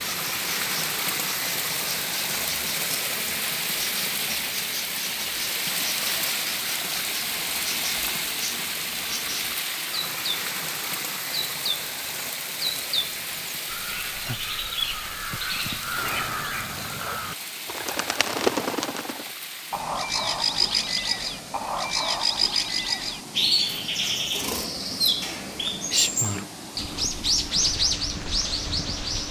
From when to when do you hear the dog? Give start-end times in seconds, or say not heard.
not heard.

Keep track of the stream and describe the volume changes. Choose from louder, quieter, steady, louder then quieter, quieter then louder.
quieter.